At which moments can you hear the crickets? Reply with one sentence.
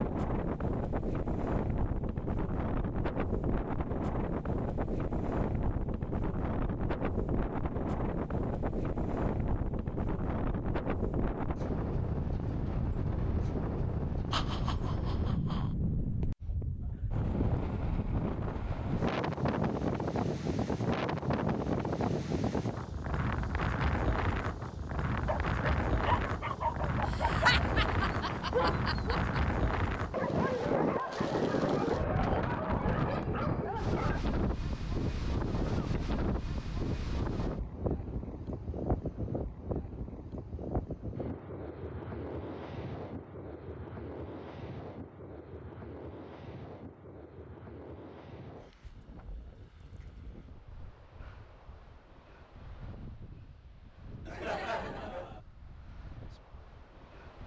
The crickets can't be heard in this clip.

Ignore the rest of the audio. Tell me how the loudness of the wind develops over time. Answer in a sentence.
The loudness of the wind goes down.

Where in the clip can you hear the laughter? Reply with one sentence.
The laughter can be heard from 14.3 to 15.8 s, from 27.1 to 29.4 s and from 54.2 to 55.4 s.